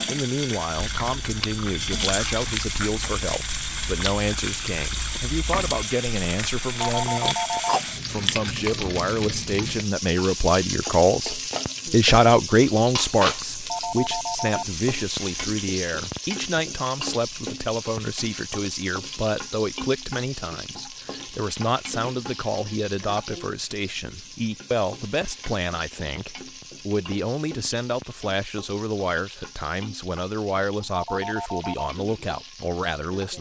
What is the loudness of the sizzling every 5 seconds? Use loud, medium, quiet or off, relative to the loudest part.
loud, loud, loud, loud, medium, medium, quiet.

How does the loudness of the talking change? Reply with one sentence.
The loudness of the talking goes up, then down.